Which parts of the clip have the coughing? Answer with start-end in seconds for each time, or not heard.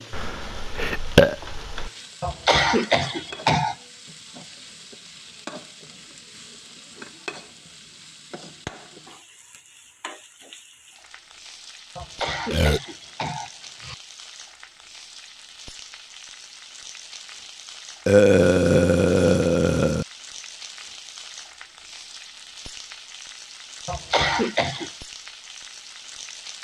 2.2-3.8, 11.9-13.9, 23.9-24.9.